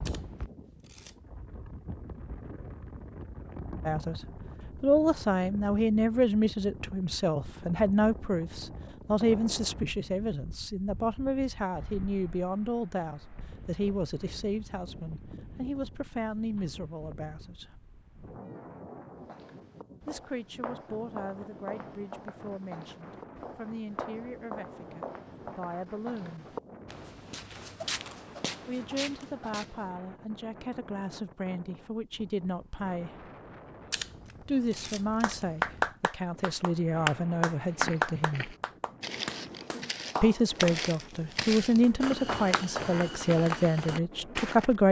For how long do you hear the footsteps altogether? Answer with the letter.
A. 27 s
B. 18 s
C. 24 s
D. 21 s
B.